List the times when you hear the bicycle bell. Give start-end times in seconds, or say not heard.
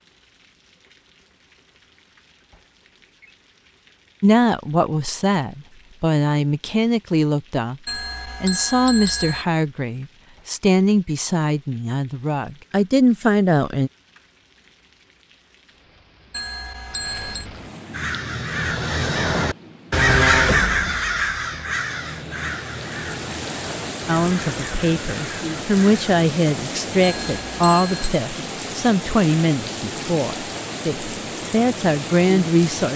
7.8-9.4, 16.3-17.4, 27.0-28.1.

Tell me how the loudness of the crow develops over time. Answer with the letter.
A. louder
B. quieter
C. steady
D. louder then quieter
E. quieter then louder
D.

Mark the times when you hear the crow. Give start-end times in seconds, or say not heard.
17.9-26.1.